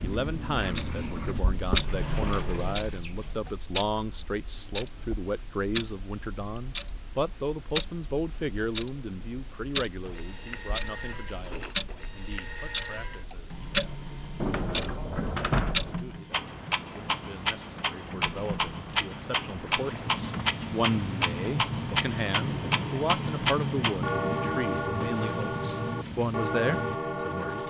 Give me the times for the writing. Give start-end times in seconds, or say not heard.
0.0-1.7, 19.9-27.6.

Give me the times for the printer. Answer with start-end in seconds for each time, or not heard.
10.0-27.6.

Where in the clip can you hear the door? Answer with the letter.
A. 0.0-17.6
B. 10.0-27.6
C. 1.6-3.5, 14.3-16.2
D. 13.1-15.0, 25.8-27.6
C.